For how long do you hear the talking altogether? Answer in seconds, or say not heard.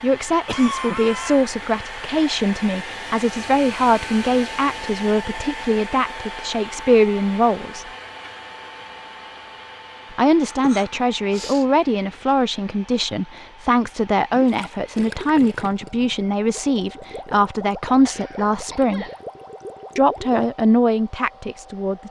19 s.